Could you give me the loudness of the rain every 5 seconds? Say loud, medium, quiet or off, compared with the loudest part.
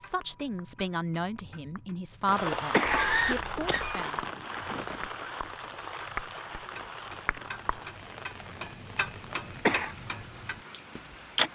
loud, medium, quiet.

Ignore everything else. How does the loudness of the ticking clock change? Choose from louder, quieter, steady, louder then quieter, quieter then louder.
louder.